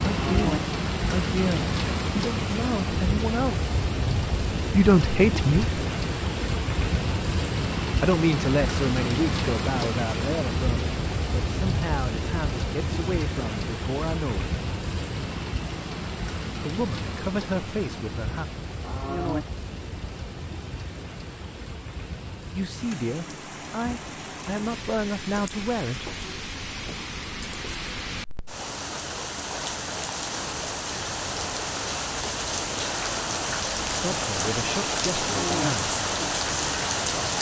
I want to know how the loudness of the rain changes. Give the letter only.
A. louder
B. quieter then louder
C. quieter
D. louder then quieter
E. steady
B.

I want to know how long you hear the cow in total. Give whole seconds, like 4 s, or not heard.
2 s.